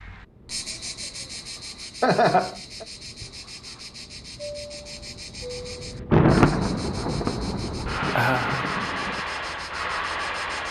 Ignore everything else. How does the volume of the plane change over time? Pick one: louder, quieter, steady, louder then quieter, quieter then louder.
louder.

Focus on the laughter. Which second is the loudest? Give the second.
2 s.